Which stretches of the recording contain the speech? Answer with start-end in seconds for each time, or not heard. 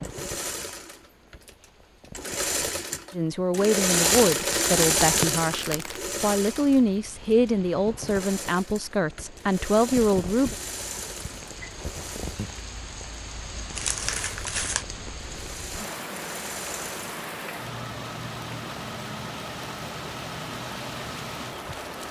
3.1-10.6.